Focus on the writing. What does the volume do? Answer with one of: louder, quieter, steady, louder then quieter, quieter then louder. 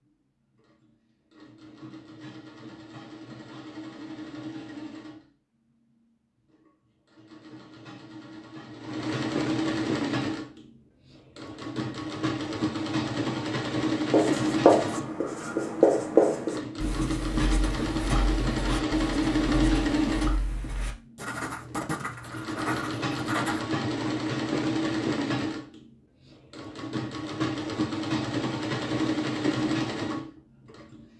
quieter.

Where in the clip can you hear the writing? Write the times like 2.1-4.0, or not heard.
14.1-23.6.